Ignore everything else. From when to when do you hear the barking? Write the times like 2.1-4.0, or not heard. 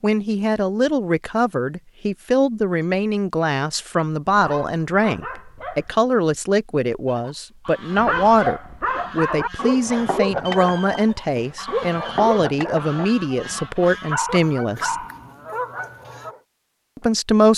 4.3-6.0, 8.0-16.4.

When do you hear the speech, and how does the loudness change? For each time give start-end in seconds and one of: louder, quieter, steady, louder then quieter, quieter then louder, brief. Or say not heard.
0.0-15.0 steady
16.9-17.5 brief.